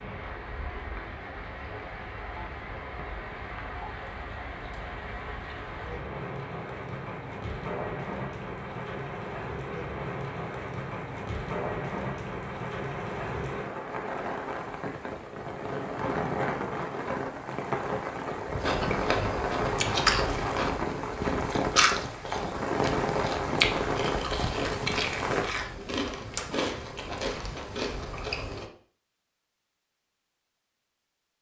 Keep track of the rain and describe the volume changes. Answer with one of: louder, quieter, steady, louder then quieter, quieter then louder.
louder.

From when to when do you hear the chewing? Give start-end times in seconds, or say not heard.
18.6-28.7.